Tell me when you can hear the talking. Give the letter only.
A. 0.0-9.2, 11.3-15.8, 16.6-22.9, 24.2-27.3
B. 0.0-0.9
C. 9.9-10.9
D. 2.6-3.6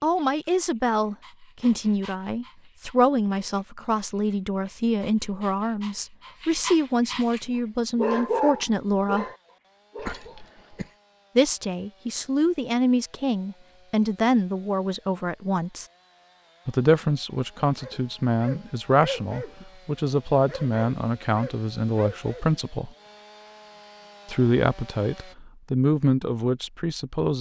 A.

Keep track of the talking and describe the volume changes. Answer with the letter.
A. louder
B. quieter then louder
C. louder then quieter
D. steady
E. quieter
D.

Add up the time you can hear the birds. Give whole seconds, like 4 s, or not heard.
not heard.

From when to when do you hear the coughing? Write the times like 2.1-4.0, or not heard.
9.9-10.9.